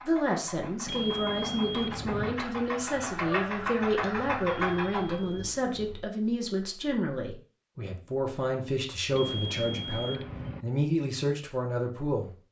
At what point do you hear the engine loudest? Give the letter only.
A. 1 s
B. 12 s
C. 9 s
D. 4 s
D.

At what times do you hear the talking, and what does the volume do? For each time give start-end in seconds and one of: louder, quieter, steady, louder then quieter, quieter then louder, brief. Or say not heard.
0.1-12.3 steady.